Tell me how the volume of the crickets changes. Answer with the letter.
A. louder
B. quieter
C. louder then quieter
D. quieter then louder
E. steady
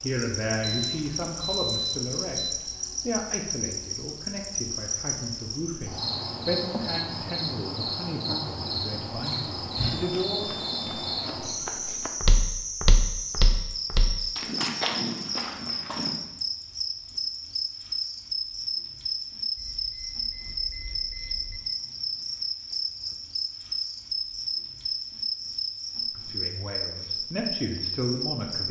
E.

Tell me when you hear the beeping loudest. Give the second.
2 s.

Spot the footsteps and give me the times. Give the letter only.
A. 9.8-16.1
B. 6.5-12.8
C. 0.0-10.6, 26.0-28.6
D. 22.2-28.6
A.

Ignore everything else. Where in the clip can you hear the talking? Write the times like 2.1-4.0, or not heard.
0.0-10.6, 26.0-28.6.